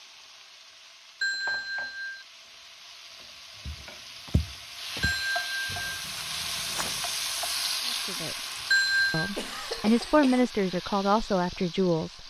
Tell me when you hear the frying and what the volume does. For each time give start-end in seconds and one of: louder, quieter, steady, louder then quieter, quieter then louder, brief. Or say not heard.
0.0-12.2 louder then quieter.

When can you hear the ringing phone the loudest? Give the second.
9 s.